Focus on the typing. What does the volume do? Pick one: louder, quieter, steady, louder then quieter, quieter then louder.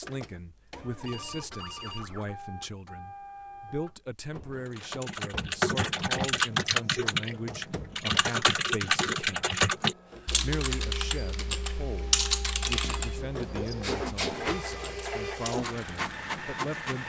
quieter.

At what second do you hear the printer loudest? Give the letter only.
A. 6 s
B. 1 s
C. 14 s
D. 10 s
C.